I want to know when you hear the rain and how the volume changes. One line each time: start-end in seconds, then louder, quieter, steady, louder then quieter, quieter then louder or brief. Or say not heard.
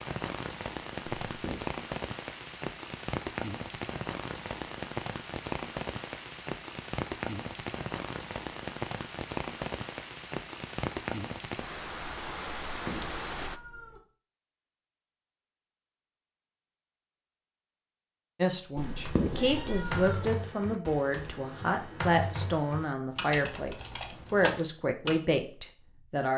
0.0-13.6 steady.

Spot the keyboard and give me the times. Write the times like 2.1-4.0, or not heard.
18.8-25.2.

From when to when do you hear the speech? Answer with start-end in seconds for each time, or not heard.
18.4-26.3.